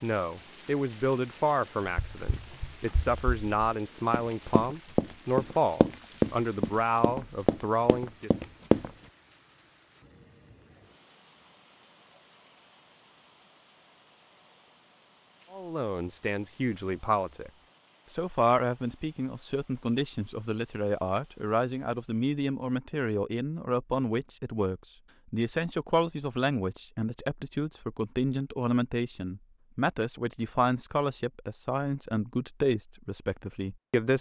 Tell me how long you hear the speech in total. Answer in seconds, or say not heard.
26 s.